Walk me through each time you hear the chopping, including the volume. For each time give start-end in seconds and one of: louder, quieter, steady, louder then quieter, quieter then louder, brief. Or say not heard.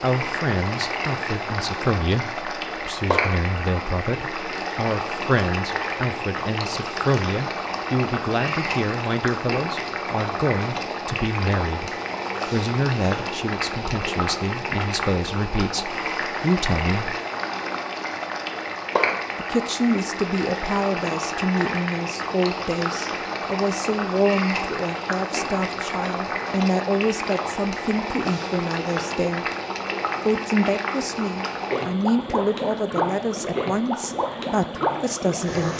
not heard.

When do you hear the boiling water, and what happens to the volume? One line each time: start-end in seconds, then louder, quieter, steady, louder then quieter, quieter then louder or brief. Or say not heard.
0.0-35.7 steady.